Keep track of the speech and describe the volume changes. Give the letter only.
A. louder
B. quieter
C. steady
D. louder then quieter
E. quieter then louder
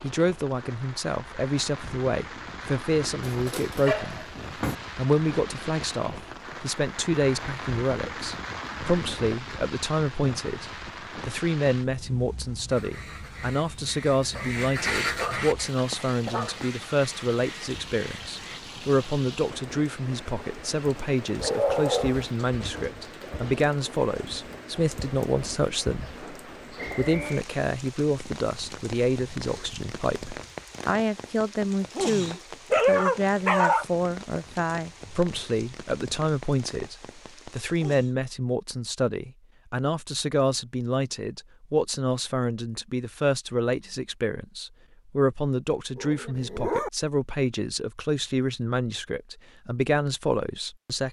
C.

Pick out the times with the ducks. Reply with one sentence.
The ducks can be heard from 12.7 to 18.6 s.